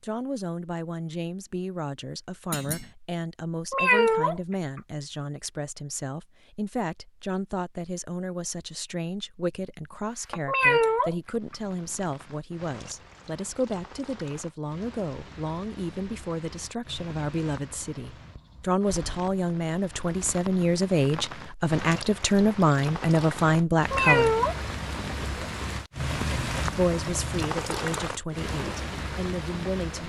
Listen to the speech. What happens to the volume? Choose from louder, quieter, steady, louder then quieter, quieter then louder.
louder.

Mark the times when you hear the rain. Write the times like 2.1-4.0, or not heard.
11.2-30.0.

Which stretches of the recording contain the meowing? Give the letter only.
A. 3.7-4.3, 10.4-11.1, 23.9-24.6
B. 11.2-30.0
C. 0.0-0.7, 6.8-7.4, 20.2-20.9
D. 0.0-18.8
A.